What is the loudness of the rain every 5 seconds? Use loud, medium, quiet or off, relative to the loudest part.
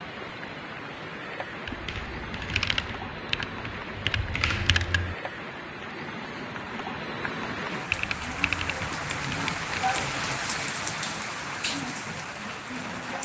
medium, loud, loud.